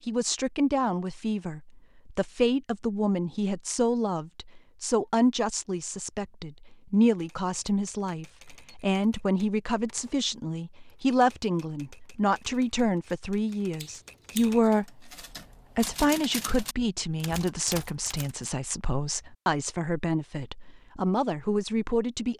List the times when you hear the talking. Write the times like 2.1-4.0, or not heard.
0.1-15.1, 15.8-22.3.